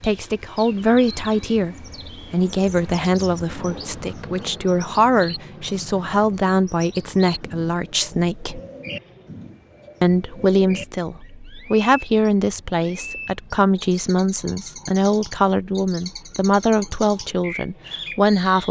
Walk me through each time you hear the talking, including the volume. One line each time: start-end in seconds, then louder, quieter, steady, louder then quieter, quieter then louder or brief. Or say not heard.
0.0-8.6 steady
10.0-18.6 steady.